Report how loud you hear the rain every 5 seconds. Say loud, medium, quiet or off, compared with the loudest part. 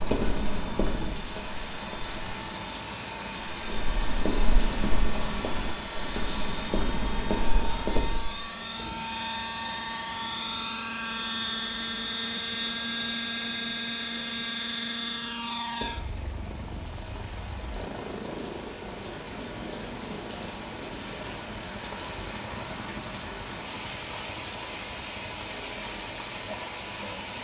loud, loud, medium, medium, loud, loud.